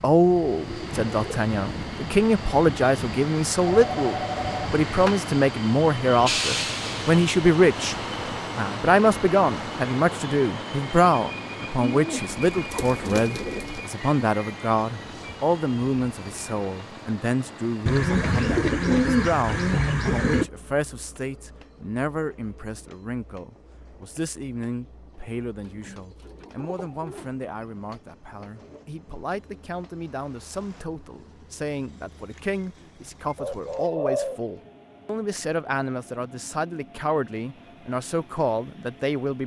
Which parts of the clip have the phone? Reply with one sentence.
You can hear the phone from 3.6 to 5.2 s.